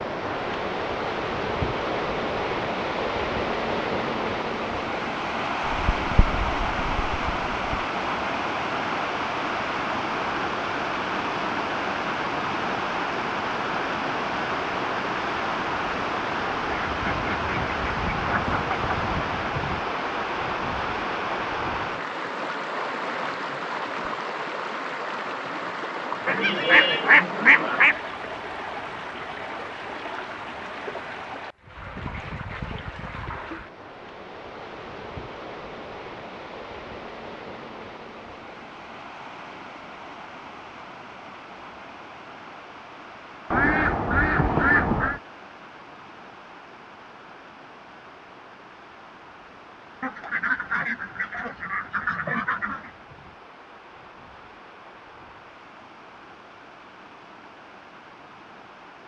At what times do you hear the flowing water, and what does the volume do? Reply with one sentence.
You can hear the flowing water from 0.0 to 59.0 s, getting quieter.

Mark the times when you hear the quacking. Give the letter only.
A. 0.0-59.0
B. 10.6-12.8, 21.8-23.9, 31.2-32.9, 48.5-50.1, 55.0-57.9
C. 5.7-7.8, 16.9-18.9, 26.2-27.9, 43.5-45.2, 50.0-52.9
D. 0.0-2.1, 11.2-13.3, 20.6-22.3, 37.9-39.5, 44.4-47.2
C.